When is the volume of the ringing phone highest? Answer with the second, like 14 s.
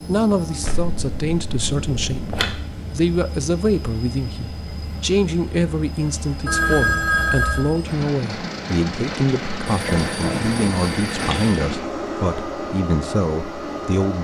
7 s.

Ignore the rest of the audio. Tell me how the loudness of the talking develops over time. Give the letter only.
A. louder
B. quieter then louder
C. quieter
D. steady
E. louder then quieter
D.